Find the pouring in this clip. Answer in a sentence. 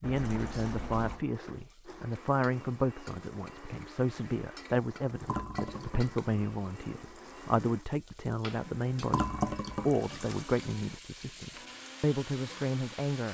You can hear the pouring from 0.0 to 1.2 s, from 5.2 to 7.2 s and from 9.1 to 10.2 s.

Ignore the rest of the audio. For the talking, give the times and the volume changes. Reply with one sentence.
You can hear the talking from 0.0 to 13.2 s, at a steady volume.